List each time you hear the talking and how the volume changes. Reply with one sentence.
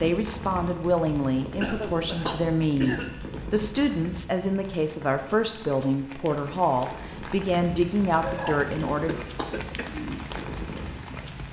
You can hear the talking from 0.0 to 9.2 s, at a steady volume.